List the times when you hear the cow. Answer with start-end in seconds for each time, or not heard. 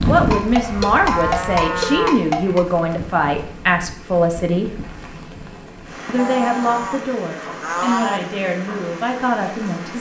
0.3-2.6, 6.2-8.2.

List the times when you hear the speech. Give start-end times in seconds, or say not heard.
0.0-4.8, 6.0-9.9.